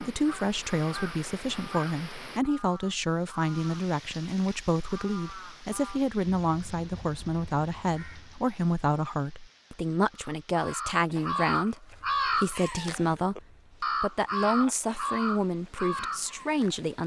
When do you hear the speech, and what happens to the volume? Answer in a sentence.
You can hear the speech from 0.0 to 17.0 s, at a steady volume.